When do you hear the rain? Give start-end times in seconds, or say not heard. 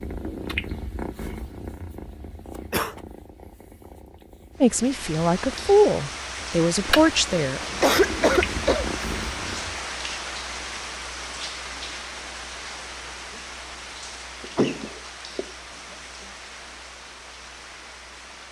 4.5-18.4.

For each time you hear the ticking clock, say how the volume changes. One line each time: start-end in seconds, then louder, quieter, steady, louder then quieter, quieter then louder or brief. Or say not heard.
not heard.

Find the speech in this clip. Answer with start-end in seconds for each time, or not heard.
4.6-7.6.